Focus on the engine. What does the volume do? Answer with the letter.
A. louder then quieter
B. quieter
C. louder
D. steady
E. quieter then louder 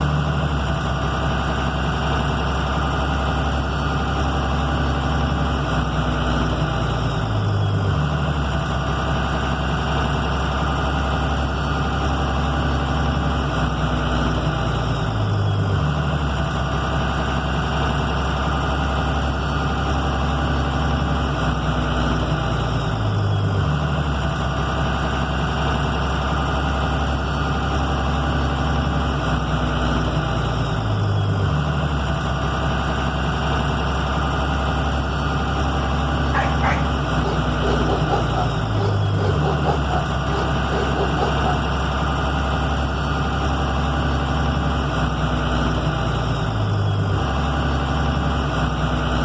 D.